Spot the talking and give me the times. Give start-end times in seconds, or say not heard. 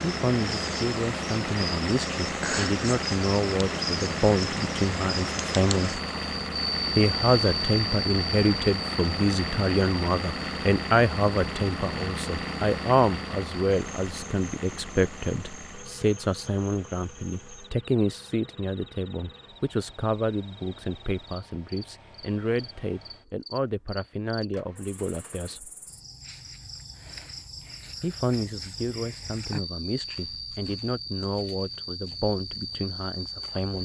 0.0-6.0, 7.0-25.7, 28.0-33.7.